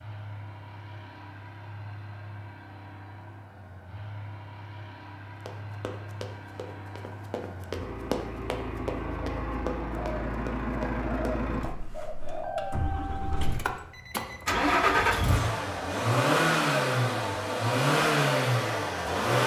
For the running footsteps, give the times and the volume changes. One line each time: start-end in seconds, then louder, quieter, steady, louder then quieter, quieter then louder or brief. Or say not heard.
5.5-11.4 louder then quieter.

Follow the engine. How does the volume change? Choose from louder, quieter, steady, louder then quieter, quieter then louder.
louder.